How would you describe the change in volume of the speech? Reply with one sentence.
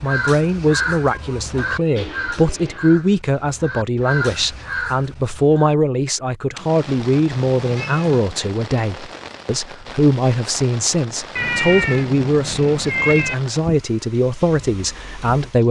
The volume of the speech stays about the same.